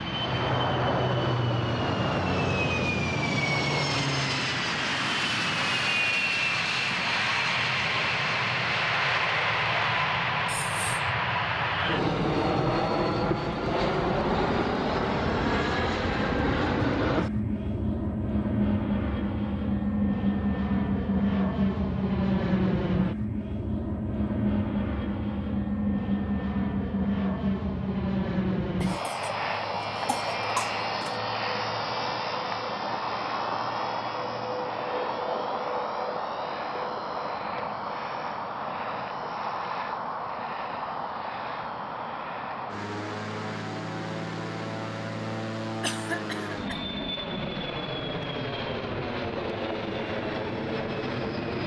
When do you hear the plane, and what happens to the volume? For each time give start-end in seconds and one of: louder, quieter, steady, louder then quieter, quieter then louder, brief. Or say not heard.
0.0-51.6 quieter.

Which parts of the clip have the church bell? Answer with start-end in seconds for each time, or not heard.
not heard.